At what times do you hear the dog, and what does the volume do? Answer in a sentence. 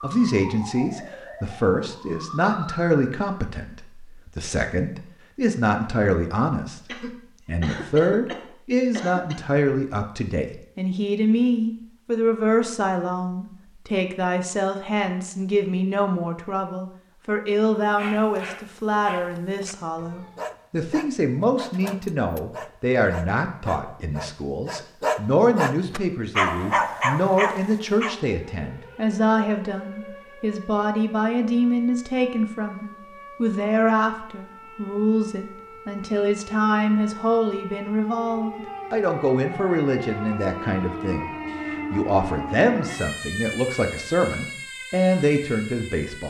You can hear the dog from 17.9 to 28.1 s, getting louder.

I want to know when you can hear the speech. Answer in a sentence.
The speech can be heard from 0.0 to 6.8 s and from 7.5 to 46.2 s.